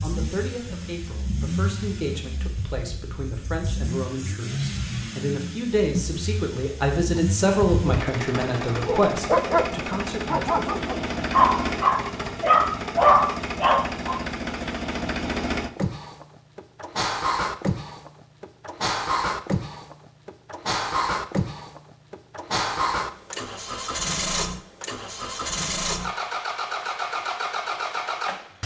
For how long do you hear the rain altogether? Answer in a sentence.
The rain can't be heard in this clip.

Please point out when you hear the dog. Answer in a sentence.
You can hear the dog from 7.2 to 8.1 s and from 8.8 to 14.2 s.